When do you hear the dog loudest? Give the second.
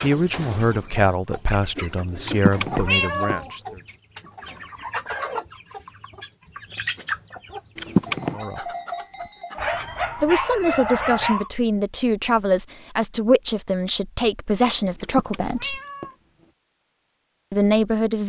11 s.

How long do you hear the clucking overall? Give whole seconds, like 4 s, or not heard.
10 s.